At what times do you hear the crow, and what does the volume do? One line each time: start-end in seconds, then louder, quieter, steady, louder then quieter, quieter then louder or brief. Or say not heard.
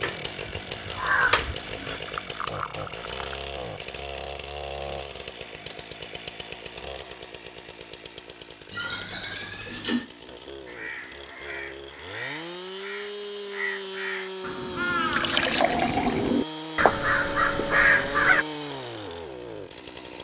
0.0-2.0 brief
10.7-18.4 louder.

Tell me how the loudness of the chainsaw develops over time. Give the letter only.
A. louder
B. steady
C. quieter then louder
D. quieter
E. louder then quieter
C.